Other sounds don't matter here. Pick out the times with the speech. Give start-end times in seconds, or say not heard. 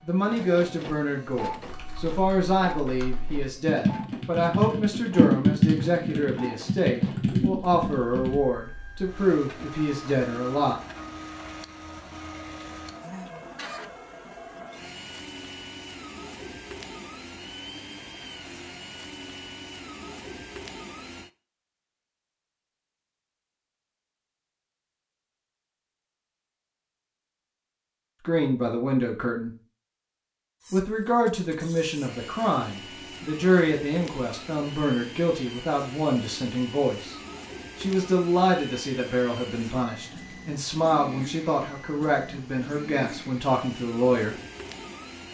0.1-10.8, 28.2-29.5, 30.7-37.1, 37.8-44.4.